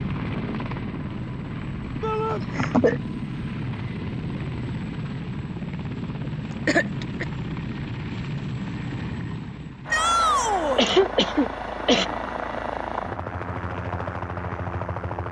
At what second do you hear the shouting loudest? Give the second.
10 s.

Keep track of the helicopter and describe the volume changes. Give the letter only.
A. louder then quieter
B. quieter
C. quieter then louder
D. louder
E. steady
E.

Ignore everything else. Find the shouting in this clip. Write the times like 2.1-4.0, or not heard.
2.0-2.5, 9.9-10.8.